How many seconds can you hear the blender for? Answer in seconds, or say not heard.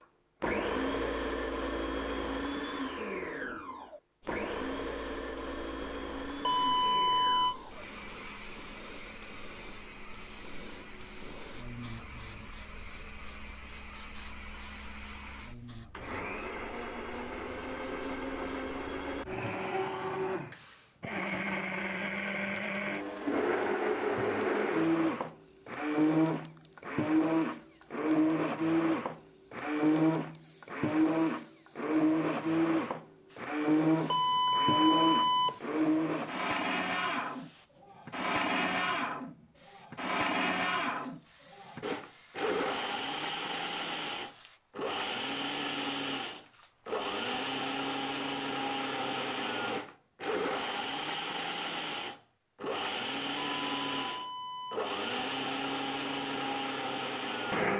57 s.